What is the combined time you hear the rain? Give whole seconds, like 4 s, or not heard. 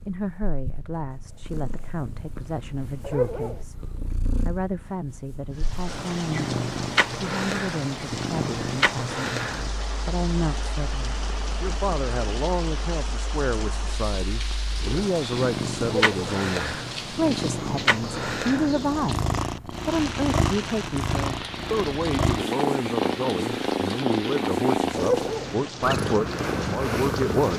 22 s.